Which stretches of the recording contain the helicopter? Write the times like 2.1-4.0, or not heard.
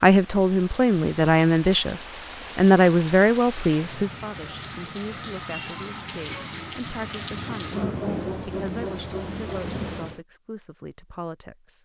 not heard.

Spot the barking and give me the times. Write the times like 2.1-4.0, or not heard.
7.7-9.7.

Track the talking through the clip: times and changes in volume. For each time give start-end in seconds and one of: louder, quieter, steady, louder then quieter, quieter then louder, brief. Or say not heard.
0.0-11.8 quieter.